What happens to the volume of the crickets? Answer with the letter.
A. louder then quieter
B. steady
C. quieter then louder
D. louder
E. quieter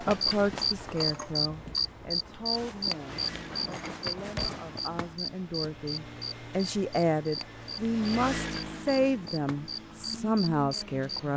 E.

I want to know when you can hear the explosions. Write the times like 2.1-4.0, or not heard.
4.3-4.7.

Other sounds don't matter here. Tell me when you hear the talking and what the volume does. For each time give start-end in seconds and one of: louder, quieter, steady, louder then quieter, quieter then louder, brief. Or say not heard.
0.0-11.3 quieter then louder.